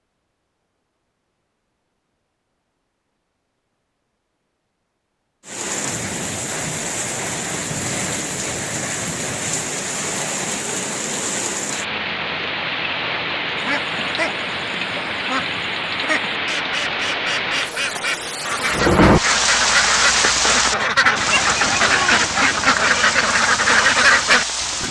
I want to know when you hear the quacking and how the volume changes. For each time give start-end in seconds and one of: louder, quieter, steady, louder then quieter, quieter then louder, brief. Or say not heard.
13.6-24.8 louder.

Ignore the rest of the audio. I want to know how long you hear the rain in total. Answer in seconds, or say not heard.
19 s.